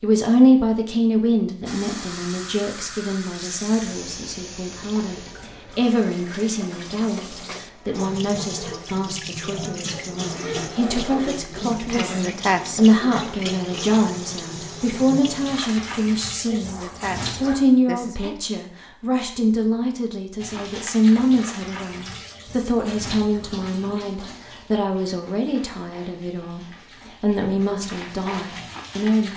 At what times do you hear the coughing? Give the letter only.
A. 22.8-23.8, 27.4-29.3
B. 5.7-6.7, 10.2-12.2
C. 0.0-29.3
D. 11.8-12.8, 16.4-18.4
D.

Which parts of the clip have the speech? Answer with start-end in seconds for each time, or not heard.
0.0-29.3.